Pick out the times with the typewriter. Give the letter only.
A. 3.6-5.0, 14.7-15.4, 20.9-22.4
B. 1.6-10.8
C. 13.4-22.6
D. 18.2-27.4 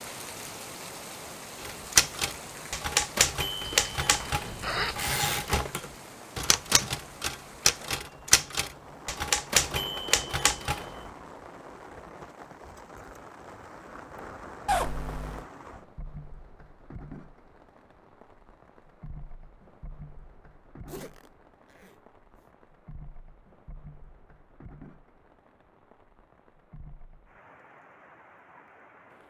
B.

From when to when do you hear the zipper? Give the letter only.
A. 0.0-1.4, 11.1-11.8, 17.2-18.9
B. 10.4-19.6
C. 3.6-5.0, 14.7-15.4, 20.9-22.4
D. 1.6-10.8
C.